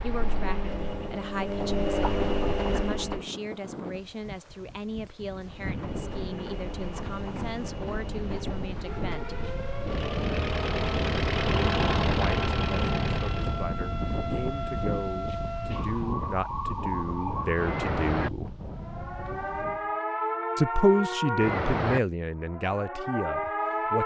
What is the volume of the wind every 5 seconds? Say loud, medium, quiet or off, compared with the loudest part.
medium, medium, loud, medium, off.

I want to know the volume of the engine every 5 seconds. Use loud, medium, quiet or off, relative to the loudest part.
loud, medium, loud, off, off.